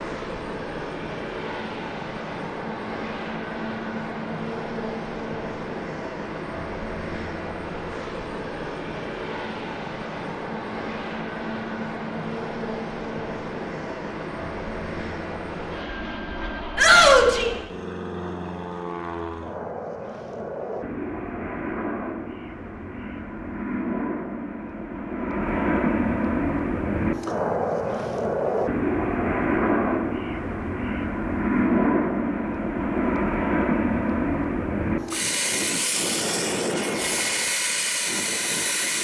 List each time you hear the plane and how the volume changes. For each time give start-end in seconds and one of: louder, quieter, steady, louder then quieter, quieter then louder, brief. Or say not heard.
0.0-38.9 louder.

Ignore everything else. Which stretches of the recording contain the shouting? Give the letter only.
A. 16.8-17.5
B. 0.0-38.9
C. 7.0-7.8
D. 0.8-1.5
A.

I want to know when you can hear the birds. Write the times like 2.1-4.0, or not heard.
not heard.